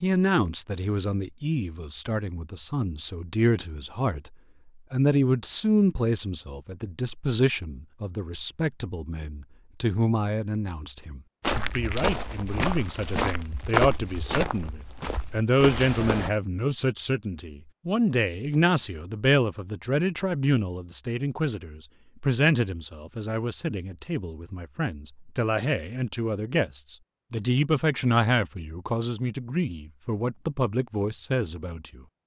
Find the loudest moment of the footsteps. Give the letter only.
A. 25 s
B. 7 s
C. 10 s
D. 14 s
D.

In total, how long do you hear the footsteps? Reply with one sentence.
You can hear the footsteps for 5 seconds altogether.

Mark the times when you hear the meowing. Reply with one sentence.
You can't hear the meowing here.